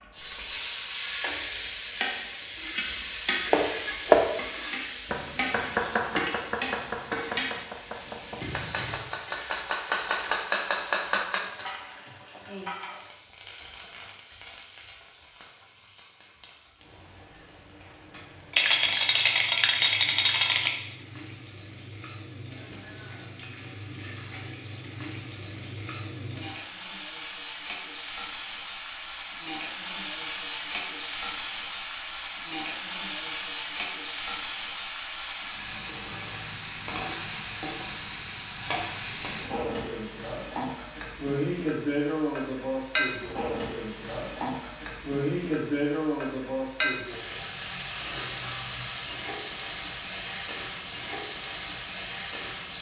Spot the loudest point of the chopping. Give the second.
4 s.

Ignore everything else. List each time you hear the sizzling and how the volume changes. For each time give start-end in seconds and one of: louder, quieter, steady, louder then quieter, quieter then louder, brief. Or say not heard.
0.0-52.7 quieter then louder.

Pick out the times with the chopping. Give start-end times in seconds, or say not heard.
3.5-11.7.